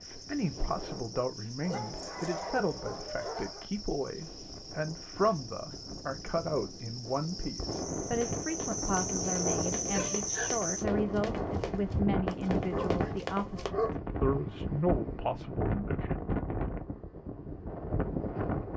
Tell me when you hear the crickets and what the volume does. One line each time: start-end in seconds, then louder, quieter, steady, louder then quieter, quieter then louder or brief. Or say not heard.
0.0-10.8 louder.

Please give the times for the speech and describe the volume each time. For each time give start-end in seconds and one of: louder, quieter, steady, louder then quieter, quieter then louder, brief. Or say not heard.
0.0-16.1 steady.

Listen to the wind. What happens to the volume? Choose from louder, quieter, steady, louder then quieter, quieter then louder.
louder.